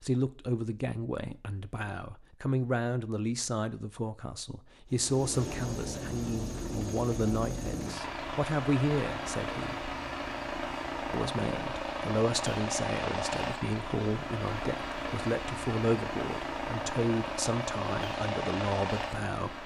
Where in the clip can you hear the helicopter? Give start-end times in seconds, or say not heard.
4.9-19.6.